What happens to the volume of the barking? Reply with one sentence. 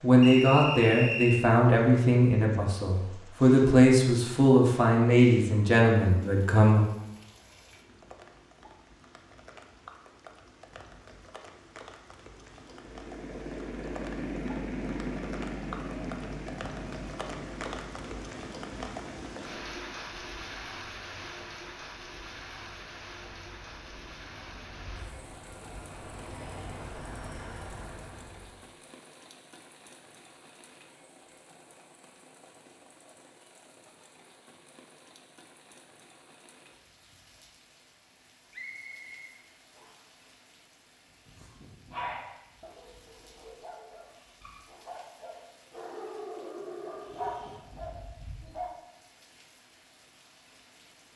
The volume of the barking goes down, then up.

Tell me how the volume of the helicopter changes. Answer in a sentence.
The loudness of the helicopter goes down, then up.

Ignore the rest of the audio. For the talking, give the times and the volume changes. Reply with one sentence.
You can hear the talking from 0.0 to 6.8 s, at a steady volume.